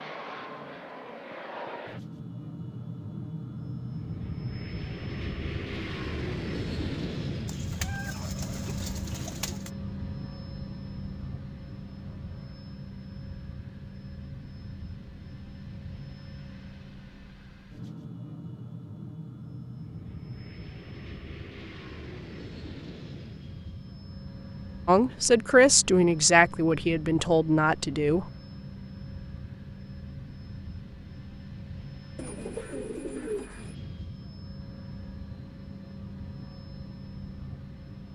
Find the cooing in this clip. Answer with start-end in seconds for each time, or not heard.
7.5-9.7, 32.1-33.8.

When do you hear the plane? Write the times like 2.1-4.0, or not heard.
0.0-38.1.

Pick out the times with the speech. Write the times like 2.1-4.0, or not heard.
24.9-28.2.